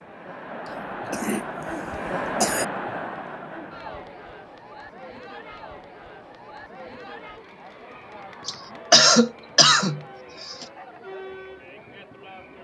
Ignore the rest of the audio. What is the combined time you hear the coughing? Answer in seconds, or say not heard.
4 s.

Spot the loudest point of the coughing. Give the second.
9 s.